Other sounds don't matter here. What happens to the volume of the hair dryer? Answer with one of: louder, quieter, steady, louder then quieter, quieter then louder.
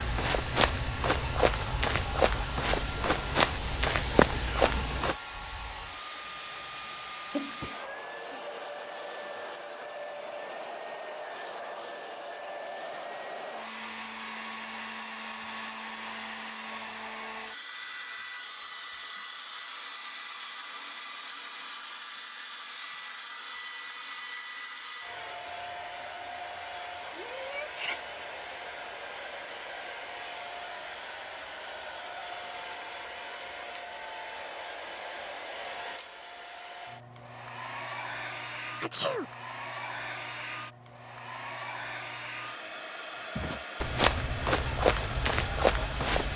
steady.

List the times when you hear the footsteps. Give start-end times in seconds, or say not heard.
0.0-5.2, 43.4-46.3.